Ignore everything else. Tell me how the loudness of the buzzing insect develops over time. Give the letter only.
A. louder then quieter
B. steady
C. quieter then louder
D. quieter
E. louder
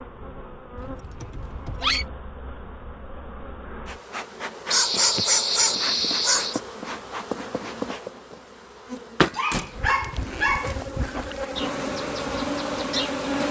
E.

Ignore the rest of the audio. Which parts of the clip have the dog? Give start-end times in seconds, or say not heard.
0.8-2.0, 4.7-6.6, 9.3-11.3.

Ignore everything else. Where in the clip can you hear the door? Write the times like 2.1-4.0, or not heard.
9.5-10.2.